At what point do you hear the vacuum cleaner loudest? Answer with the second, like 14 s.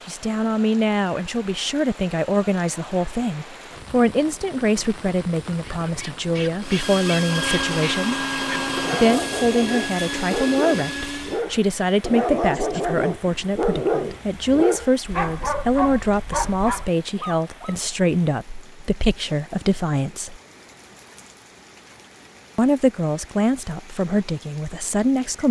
8 s.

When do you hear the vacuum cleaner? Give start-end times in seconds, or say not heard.
6.6-11.4.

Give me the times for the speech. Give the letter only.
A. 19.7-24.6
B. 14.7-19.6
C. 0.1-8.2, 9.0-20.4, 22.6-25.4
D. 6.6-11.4
C.